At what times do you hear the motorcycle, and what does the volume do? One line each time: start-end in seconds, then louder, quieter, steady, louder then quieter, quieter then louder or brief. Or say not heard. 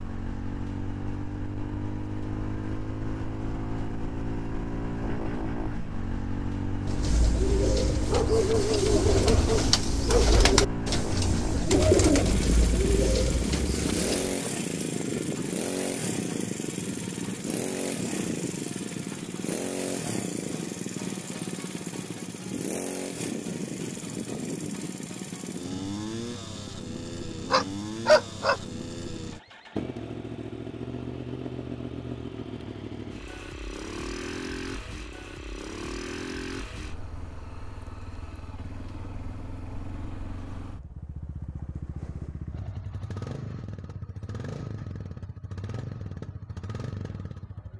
0.0-47.7 quieter.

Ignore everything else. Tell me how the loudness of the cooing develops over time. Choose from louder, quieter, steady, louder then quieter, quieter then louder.
louder then quieter.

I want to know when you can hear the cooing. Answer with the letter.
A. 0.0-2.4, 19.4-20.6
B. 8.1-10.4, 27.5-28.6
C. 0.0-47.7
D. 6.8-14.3
D.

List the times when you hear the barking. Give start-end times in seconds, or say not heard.
8.1-10.4, 27.5-28.6.